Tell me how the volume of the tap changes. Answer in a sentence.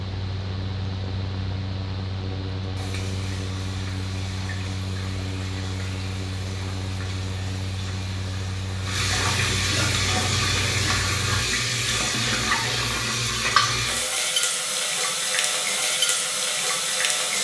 The volume of the tap goes up.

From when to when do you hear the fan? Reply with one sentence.
The fan can be heard from 0.0 to 11.4 s.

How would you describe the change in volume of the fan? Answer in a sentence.
The loudness of the fan stays about the same.